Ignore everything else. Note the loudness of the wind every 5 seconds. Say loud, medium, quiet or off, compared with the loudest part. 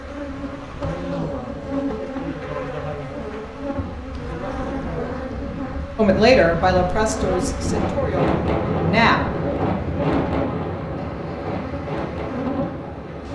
quiet, loud, loud.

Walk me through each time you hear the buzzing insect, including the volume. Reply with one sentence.
You can hear the buzzing insect from 0.0 to 13.3 s, at a steady volume.